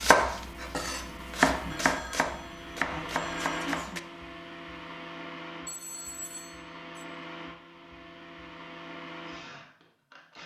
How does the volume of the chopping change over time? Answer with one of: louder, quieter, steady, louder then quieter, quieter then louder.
louder then quieter.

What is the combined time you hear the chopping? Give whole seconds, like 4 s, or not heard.
4 s.